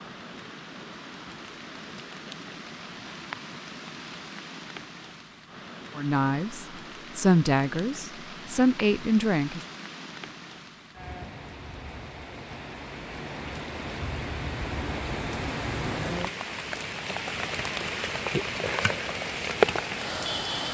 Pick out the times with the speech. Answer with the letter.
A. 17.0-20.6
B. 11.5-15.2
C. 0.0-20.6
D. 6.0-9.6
D.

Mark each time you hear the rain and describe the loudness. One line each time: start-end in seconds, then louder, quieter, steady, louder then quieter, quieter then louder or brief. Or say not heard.
0.0-20.6 louder.